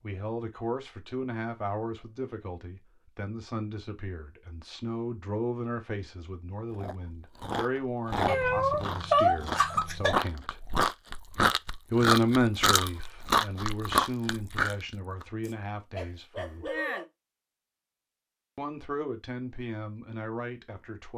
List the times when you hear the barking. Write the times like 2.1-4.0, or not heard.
15.4-17.1.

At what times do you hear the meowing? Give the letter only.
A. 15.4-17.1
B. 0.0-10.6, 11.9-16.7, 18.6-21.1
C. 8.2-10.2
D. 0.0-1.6
C.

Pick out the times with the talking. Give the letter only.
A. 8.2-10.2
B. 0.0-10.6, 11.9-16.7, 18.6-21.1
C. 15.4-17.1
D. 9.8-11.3
B.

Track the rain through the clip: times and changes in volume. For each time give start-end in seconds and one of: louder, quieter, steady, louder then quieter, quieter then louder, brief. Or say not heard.
not heard.